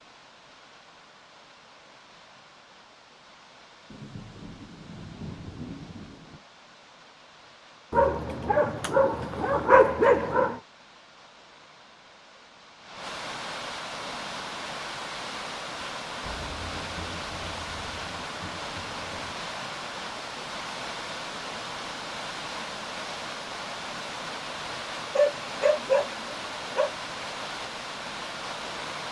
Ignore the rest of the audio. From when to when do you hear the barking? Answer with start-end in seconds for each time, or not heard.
7.9-10.6, 25.1-26.9.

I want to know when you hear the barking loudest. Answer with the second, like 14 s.
10 s.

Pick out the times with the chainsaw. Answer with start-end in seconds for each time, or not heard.
not heard.